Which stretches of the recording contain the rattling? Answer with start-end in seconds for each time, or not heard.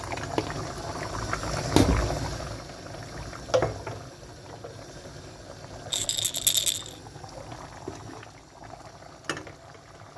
5.9-7.0.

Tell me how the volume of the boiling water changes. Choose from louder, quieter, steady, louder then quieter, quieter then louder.
quieter.